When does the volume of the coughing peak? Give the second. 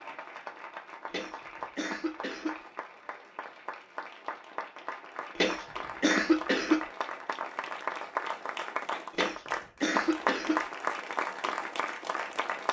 6 s.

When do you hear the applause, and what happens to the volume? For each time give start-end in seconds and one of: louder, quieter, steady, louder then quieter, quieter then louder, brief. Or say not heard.
0.0-12.6 louder.